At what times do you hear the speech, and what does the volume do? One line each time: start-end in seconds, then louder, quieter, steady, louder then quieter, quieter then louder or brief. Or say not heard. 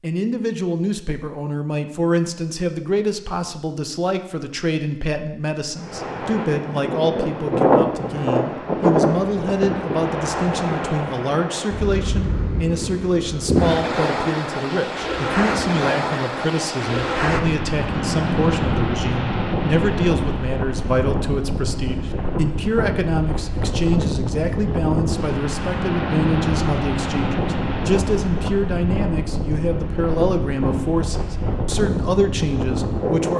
0.0-33.3 steady.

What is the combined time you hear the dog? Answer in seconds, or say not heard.
not heard.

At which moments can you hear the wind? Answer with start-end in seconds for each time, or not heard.
5.8-33.3.